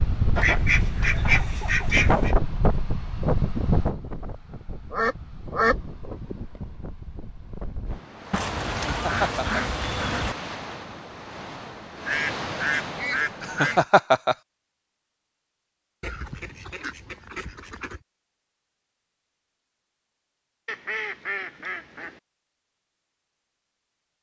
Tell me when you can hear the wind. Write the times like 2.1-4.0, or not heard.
0.0-13.8.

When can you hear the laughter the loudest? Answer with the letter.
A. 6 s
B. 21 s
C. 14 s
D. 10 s
C.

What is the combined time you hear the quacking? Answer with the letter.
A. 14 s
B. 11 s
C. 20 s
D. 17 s
B.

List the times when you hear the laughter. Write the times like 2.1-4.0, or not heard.
8.8-9.6, 13.4-14.3.